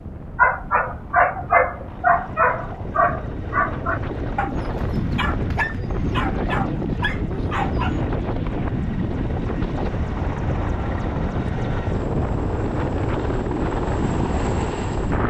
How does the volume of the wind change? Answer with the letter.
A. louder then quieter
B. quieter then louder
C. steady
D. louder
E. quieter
D.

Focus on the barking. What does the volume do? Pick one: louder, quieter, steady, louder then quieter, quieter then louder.
quieter.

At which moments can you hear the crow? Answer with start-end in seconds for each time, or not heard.
not heard.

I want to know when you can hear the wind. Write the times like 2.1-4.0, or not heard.
0.0-15.2.